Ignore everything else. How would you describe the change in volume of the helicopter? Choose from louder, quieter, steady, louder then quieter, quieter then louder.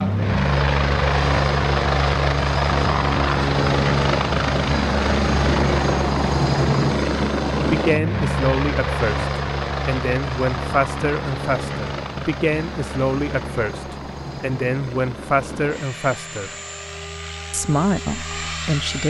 quieter.